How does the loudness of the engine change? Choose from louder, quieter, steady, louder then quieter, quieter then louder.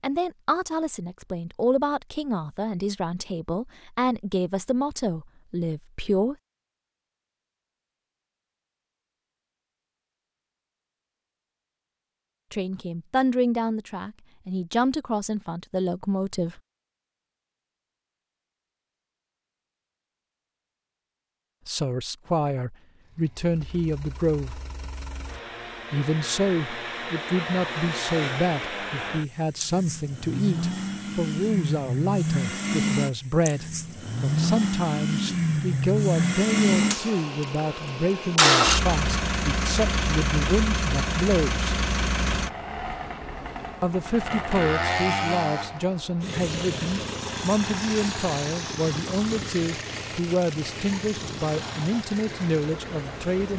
louder then quieter.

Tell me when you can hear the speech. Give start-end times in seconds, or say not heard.
0.0-6.3, 12.5-16.6, 21.6-24.6, 25.9-41.7, 43.8-53.5.